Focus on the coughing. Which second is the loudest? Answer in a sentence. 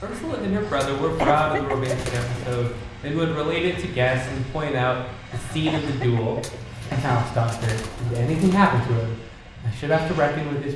The volume of the coughing peaks at 1 second.